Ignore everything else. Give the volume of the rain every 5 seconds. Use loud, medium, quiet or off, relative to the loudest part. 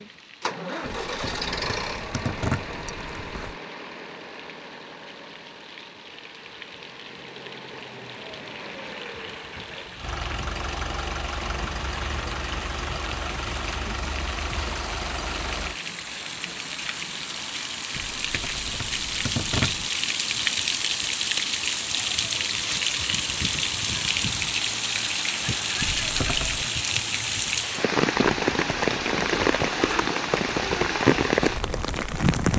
quiet, quiet, quiet, medium, loud, loud, loud.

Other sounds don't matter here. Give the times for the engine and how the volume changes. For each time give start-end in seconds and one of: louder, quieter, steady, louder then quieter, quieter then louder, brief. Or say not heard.
0.0-15.8 quieter then louder.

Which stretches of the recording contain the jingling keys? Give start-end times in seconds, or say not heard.
0.8-3.5, 17.9-19.9, 25.8-26.7.